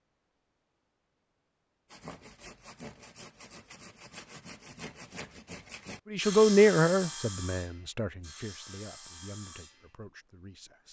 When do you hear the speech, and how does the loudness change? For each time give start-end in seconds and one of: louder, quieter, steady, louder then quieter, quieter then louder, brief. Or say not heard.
6.1-10.8 quieter.